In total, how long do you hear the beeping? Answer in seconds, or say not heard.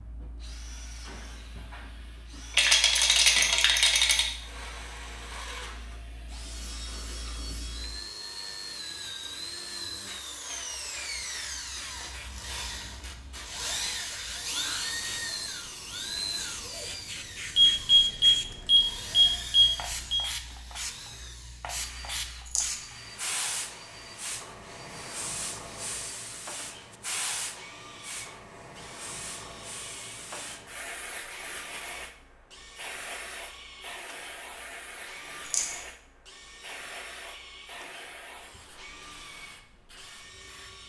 3 s.